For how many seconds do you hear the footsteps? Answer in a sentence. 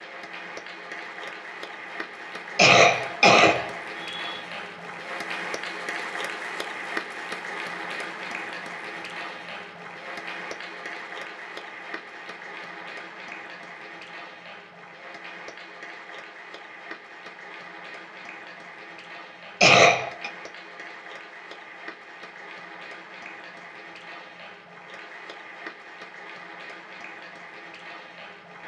You can't hear the footsteps here.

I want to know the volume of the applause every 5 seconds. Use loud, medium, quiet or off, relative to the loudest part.
loud, loud, medium, medium, medium, medium.